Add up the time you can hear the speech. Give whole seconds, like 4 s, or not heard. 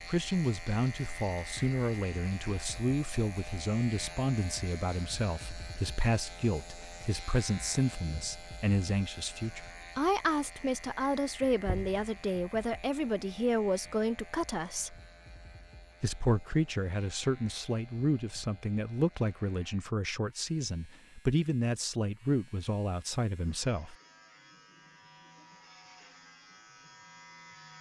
23 s.